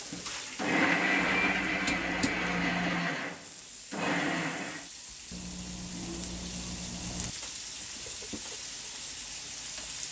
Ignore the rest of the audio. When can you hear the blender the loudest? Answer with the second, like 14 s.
1 s.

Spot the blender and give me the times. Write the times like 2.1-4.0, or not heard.
0.0-4.9.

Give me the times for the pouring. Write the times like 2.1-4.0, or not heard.
1.1-2.8, 5.3-7.3.